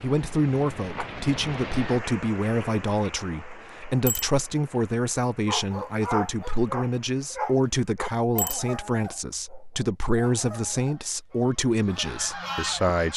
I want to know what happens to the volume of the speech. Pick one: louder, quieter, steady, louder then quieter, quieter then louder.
steady.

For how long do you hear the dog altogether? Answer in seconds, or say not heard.
7 s.